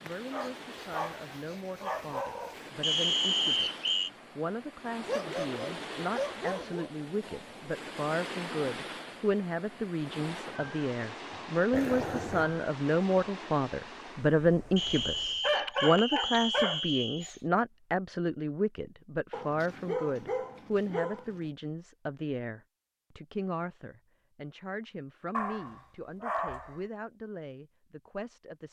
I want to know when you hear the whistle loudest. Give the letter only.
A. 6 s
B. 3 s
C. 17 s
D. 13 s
B.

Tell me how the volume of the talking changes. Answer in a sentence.
The loudness of the talking goes up, then down.